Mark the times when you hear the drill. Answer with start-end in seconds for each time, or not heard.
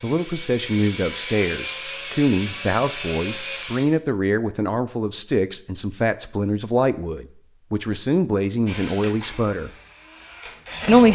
0.0-3.9, 8.7-11.1.